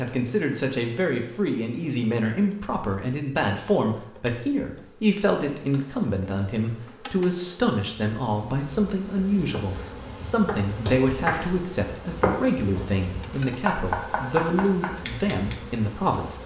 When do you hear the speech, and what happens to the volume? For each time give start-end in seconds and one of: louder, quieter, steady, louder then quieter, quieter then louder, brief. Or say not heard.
0.0-16.4 steady.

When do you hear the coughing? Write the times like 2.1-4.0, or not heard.
not heard.